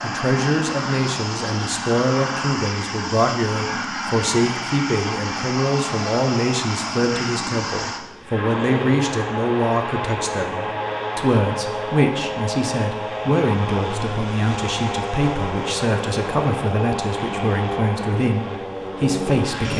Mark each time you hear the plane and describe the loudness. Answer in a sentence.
The plane can be heard from 0.0 to 19.7 s, at a steady volume.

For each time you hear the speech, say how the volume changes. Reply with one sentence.
The speech can be heard from 0.0 to 19.7 s, at a steady volume.